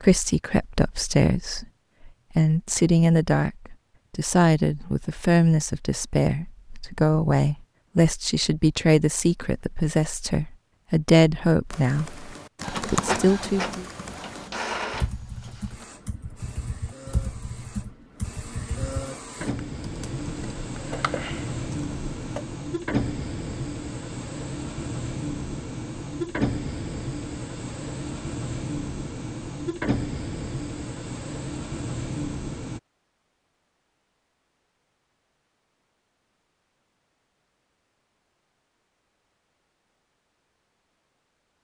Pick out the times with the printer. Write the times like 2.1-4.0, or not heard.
12.6-32.8.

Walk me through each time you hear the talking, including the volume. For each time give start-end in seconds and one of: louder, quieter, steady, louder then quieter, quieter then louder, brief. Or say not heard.
0.0-13.8 steady.